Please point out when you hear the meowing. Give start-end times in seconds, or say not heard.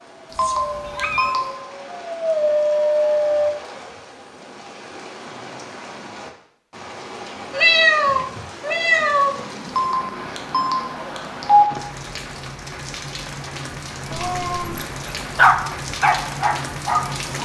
0.3-1.4, 7.5-9.4, 14.1-14.8.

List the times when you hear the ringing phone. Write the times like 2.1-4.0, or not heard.
0.3-1.4, 9.7-11.7.